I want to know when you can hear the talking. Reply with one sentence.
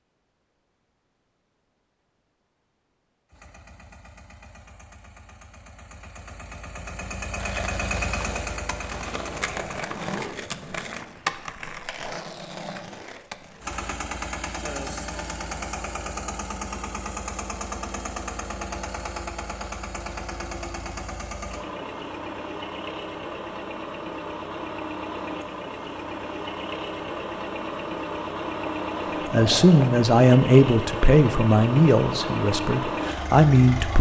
The talking can be heard from 29.3 to 33.9 s.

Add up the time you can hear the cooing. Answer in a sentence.
You can't hear the cooing here.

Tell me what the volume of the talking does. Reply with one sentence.
The loudness of the talking goes down, then up.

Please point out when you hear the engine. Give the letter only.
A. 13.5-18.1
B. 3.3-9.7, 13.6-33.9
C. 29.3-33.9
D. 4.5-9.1
B.